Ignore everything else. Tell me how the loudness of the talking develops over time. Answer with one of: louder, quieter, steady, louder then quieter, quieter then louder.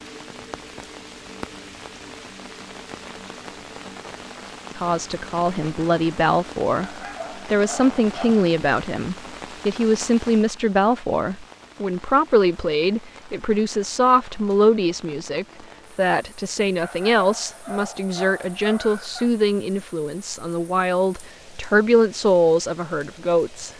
steady.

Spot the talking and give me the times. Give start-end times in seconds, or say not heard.
4.8-23.7.